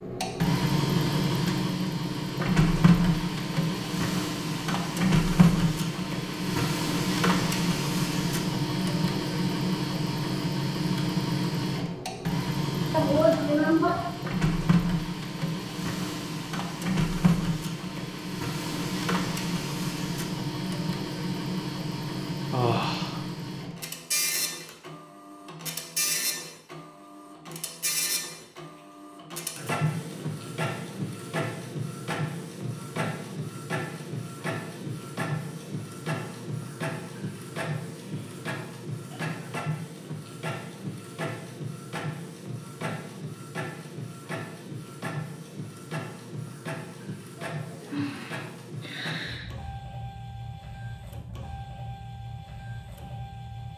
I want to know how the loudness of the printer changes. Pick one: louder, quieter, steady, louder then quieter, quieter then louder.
quieter.